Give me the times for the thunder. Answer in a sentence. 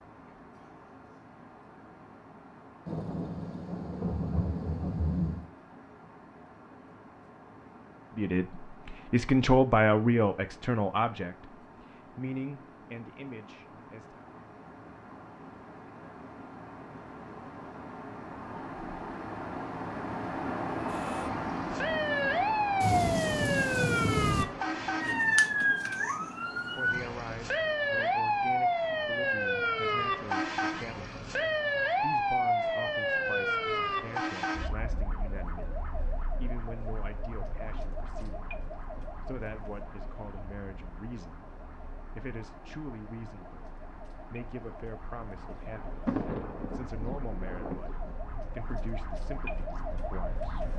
You can hear the thunder from 2.9 to 5.5 s, from 22.8 to 24.4 s and from 45.4 to 48.1 s.